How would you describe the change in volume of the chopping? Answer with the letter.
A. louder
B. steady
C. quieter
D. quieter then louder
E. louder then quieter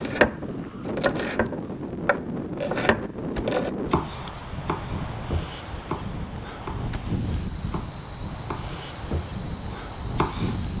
D.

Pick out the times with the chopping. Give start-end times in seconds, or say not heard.
0.0-10.7.